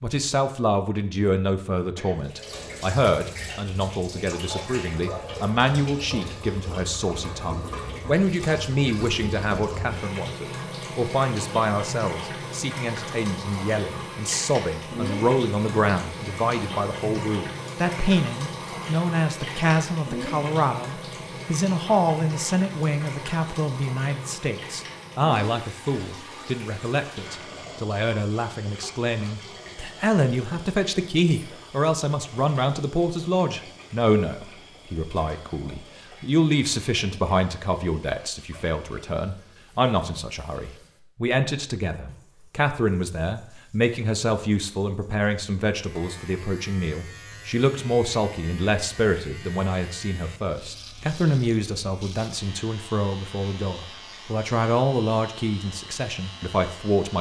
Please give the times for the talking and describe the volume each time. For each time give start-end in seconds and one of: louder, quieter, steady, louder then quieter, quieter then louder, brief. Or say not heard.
0.0-57.1 steady.